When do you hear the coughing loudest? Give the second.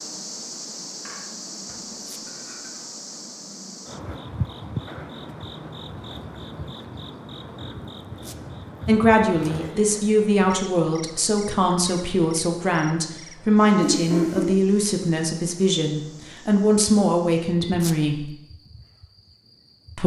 14 s.